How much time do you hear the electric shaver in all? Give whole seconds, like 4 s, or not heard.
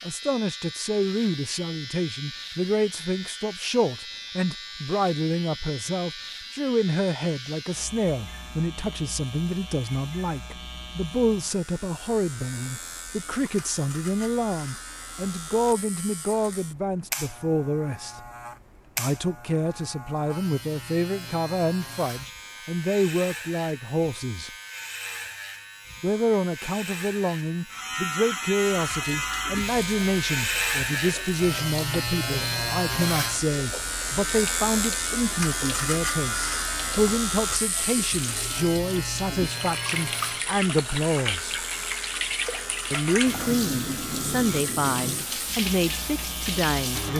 47 s.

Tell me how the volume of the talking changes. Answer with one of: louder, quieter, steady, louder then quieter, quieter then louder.
steady.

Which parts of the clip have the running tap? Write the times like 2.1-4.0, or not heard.
28.6-47.1.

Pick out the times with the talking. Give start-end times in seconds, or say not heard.
0.0-18.2, 18.9-24.5, 26.0-41.5, 42.9-47.1.